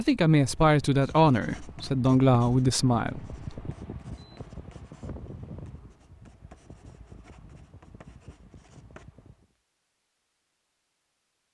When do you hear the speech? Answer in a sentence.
You can hear the speech from 0.0 to 3.8 s.